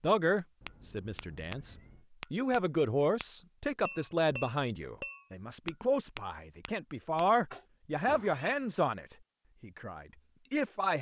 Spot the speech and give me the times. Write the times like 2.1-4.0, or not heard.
0.0-10.9.